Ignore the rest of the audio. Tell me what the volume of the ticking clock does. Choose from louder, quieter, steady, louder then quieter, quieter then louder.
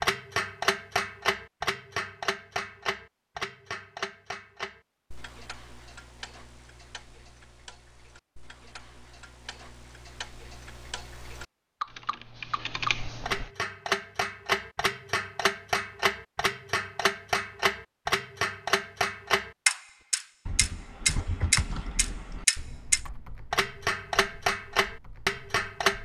quieter then louder.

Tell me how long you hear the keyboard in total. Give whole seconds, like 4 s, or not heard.
7 s.